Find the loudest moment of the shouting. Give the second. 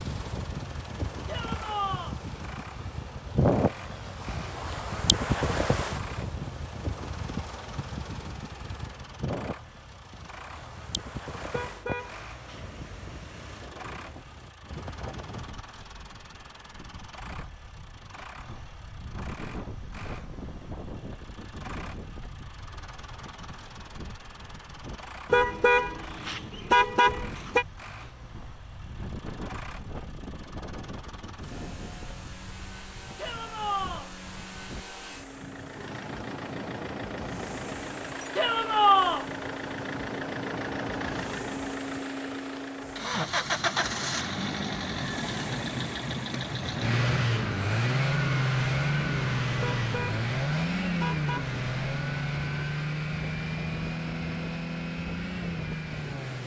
39 s.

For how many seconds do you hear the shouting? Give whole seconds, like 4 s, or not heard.
3 s.